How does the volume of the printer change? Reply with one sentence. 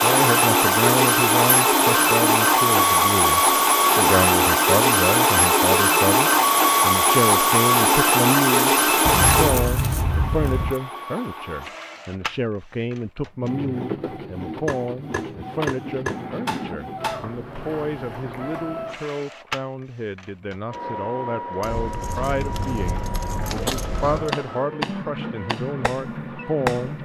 The volume of the printer goes down.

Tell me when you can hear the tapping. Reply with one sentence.
You can hear the tapping from 14.7 to 17.2 s and from 23.6 to 26.9 s.